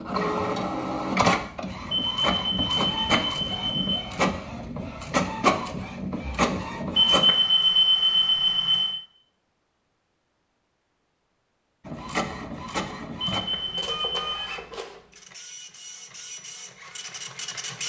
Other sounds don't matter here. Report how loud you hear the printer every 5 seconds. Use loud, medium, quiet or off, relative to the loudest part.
loud, loud, medium, quiet.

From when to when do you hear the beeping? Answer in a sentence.
You can hear the beeping from 1.9 to 4.0 s, from 7.0 to 9.0 s and from 13.3 to 14.3 s.